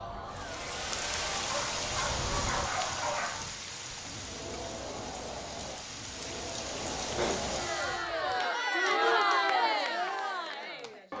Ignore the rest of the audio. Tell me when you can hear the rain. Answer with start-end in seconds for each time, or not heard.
0.0-8.1.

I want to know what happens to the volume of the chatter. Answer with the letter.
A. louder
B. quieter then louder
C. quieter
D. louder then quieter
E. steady
A.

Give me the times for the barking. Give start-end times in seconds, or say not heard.
1.5-3.5, 7.0-8.3.